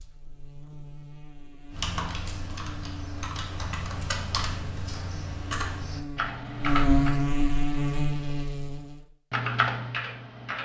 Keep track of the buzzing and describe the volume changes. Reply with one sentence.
The volume of the buzzing goes up.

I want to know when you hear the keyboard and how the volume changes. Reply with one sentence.
The keyboard can be heard from 1.7 to 7.2 s, getting louder; and briefly from 9.3 to 10.6 s.